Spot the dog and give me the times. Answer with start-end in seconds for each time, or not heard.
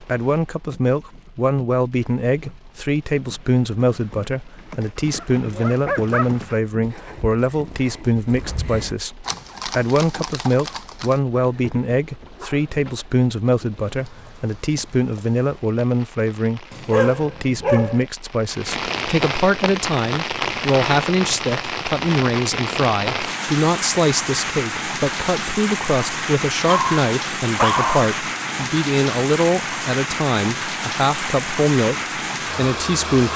4.7-6.4, 11.4-13.1, 16.7-18.1, 26.6-28.1.